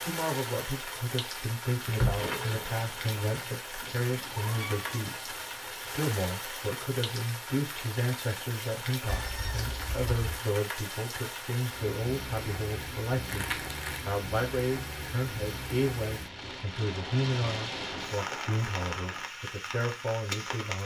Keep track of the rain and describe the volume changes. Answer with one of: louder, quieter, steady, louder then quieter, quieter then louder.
steady.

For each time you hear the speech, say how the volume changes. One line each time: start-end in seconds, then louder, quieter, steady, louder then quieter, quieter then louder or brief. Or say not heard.
0.1-20.8 steady.